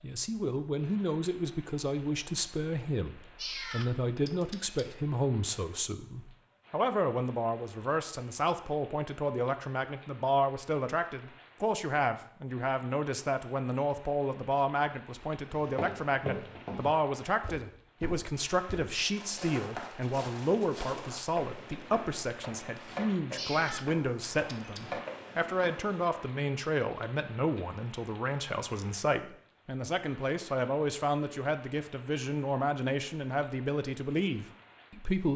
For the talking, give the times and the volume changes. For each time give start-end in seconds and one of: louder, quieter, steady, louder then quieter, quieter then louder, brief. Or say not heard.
0.0-35.3 steady.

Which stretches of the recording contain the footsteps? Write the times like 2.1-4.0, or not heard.
15.5-26.1.